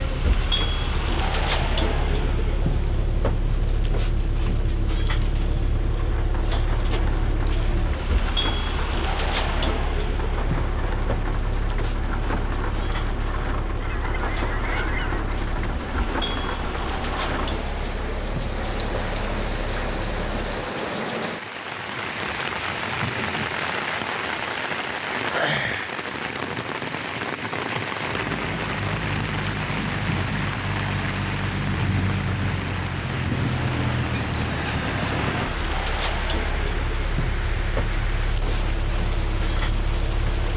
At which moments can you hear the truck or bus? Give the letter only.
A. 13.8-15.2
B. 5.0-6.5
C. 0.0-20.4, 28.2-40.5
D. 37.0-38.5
C.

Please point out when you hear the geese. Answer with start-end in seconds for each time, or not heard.
13.8-15.2.